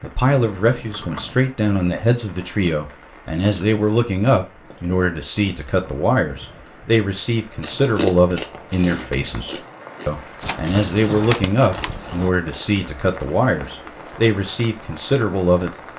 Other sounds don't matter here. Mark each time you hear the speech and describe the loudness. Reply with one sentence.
You can hear the speech from 0.0 to 15.8 s, at a steady volume.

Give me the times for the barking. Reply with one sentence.
The barking can't be heard in this clip.